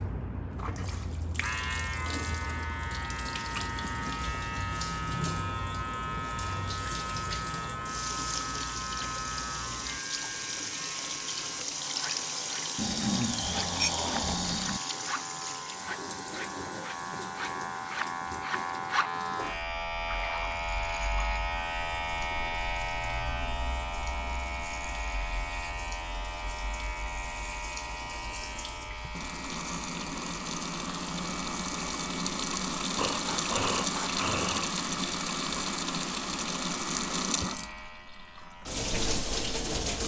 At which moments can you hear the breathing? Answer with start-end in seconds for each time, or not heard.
12.8-14.8, 33.0-34.8.